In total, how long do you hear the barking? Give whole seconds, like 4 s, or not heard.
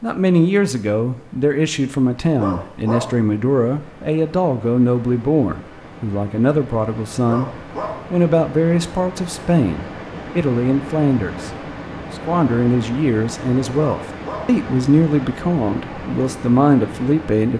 2 s.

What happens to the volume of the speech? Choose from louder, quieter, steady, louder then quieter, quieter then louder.
steady.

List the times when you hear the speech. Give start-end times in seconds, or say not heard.
0.0-7.5, 8.1-11.5, 12.2-17.5.